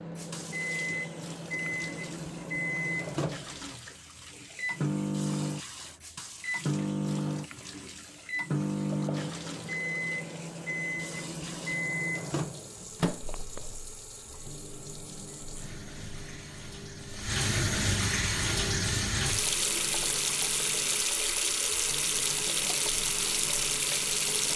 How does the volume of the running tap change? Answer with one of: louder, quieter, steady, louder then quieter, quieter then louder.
louder.